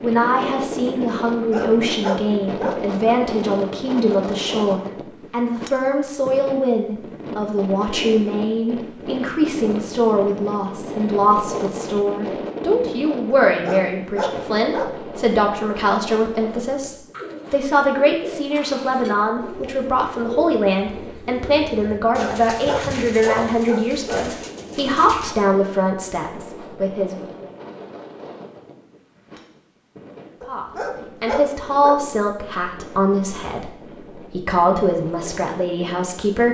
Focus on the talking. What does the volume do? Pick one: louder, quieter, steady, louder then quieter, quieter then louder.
steady.